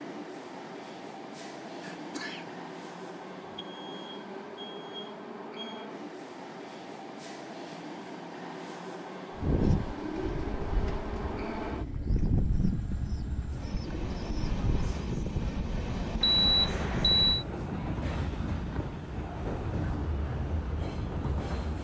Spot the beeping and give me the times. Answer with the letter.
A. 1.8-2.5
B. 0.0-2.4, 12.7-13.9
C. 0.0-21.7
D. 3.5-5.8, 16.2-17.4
D.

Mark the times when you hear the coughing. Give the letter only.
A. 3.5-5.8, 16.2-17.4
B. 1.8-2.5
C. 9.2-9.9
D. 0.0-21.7
B.